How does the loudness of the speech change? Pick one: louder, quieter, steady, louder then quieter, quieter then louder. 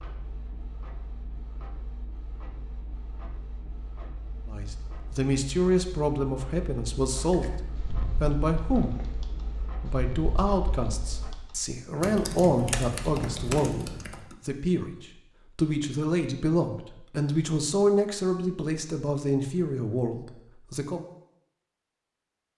steady.